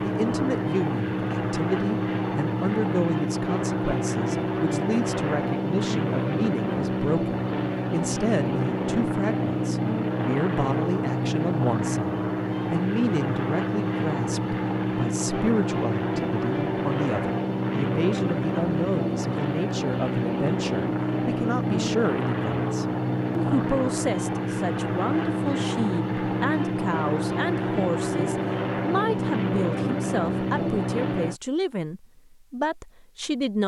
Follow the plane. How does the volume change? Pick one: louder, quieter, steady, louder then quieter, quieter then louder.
steady.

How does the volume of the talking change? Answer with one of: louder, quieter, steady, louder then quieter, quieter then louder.
steady.